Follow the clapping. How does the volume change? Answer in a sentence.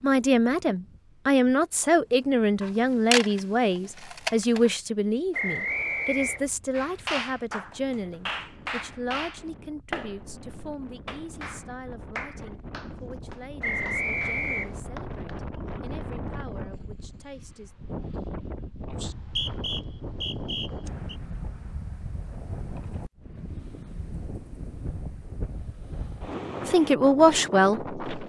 The loudness of the clapping goes down.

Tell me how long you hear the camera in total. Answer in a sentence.
You can hear the camera for 2 seconds altogether.